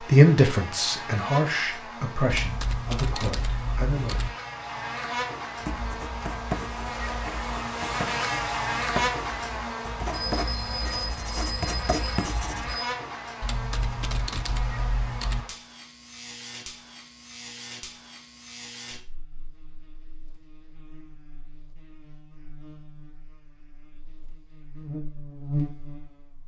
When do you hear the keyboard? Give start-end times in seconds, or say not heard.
2.3-4.3, 13.4-15.4.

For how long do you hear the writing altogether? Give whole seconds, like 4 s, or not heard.
7 s.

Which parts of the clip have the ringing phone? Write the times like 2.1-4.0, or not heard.
10.1-12.8.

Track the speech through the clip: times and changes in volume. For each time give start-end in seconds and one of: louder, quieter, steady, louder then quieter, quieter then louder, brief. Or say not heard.
0.0-4.2 quieter.